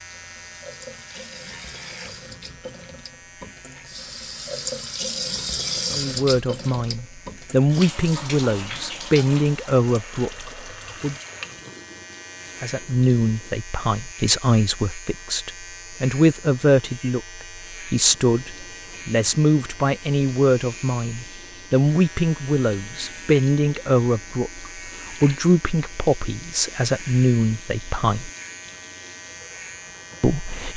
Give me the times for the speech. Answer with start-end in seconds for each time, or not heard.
5.9-11.2, 12.6-28.3, 30.2-30.7.